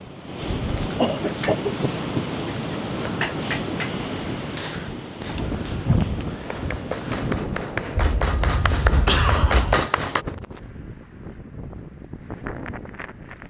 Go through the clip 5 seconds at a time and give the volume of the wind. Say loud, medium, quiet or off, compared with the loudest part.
loud, loud, medium.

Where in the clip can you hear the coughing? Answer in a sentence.
The coughing can be heard from 0.9 to 2.2 s and from 8.0 to 9.8 s.